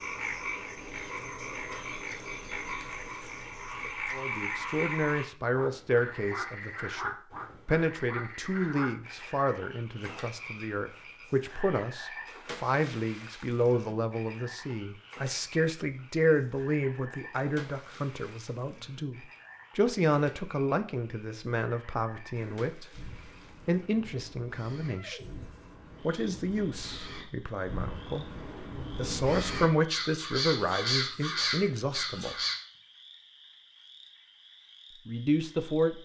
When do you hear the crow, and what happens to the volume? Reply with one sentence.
You can hear the crow from 22.4 to 32.5 s, getting louder.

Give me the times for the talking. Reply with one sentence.
The talking can be heard from 4.1 to 25.3 s, from 26.0 to 32.4 s and from 35.0 to 35.9 s.